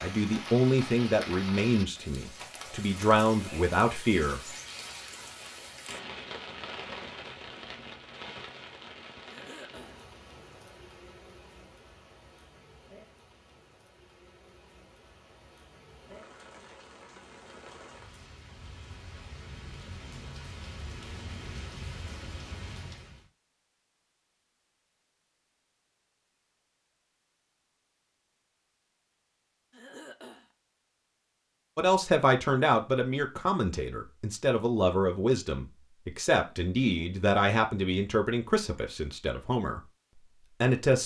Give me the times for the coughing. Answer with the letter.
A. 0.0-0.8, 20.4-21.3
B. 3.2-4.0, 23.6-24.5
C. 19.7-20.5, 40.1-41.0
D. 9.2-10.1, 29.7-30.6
D.